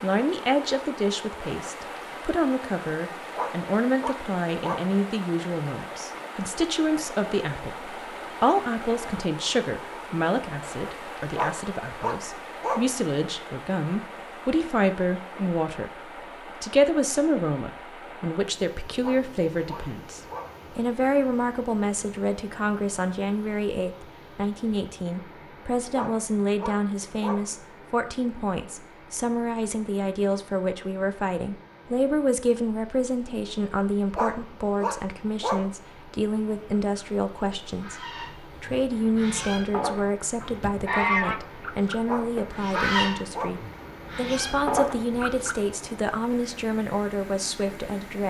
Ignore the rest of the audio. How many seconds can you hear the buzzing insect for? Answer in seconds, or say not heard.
not heard.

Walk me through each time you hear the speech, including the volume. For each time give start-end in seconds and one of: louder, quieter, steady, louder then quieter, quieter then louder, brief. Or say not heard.
0.0-48.2 steady.